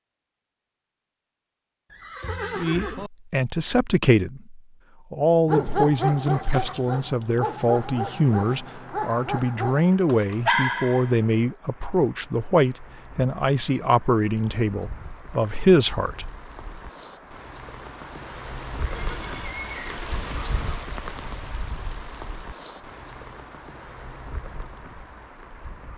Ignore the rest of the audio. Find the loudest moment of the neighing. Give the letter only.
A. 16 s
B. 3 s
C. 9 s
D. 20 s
B.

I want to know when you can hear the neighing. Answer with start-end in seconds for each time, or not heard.
1.9-3.1, 18.9-20.9.